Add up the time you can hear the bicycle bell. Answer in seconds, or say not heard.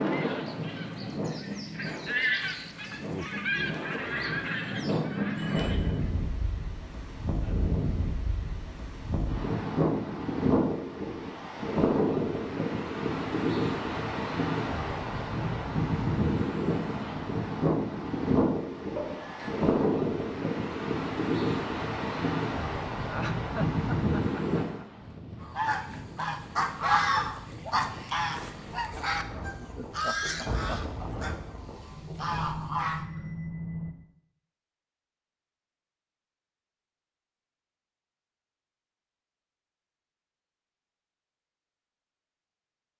3 s.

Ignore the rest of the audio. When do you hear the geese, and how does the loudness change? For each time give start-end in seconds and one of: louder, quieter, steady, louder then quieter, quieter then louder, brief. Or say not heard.
0.0-6.1 louder then quieter
25.4-33.0 quieter.